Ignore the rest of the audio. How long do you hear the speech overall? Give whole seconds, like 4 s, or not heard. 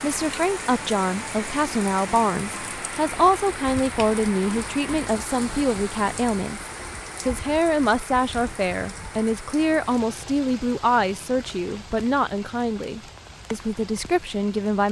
15 s.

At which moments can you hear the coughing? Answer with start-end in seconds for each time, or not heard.
not heard.